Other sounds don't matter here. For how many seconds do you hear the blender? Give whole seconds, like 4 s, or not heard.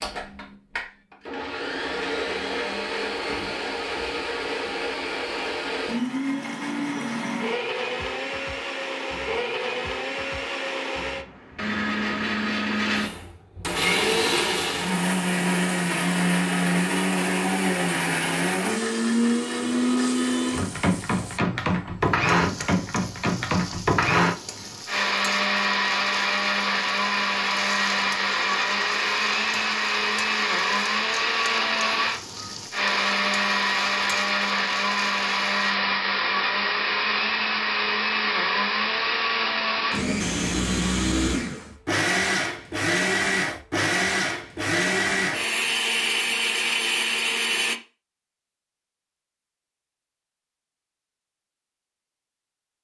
48 s.